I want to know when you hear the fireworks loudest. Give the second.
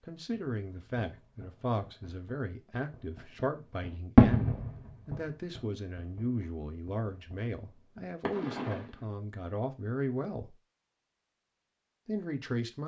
4 s.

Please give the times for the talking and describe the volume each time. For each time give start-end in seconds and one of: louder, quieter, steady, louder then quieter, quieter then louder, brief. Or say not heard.
0.0-10.6 steady
12.1-12.8 brief.